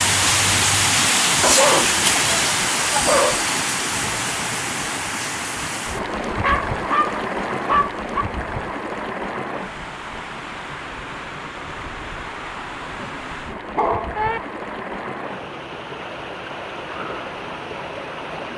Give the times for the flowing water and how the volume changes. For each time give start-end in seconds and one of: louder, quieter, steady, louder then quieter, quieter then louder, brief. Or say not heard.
0.0-18.5 quieter.